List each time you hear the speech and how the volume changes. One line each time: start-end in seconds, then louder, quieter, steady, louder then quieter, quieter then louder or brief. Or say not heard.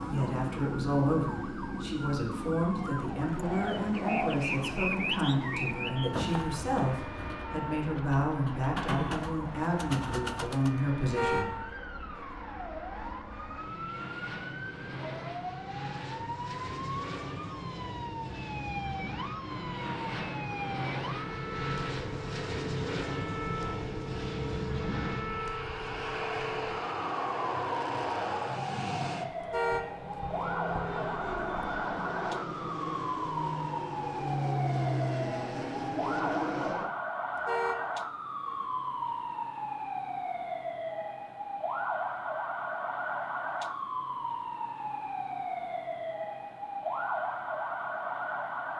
0.1-11.5 steady.